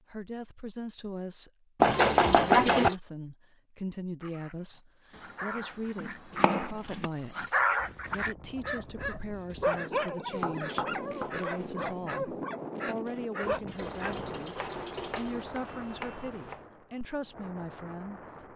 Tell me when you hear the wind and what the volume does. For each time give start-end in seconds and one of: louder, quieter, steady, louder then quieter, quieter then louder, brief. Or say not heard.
7.8-18.5 louder then quieter.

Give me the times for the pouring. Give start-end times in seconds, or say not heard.
1.9-3.0, 13.7-15.5.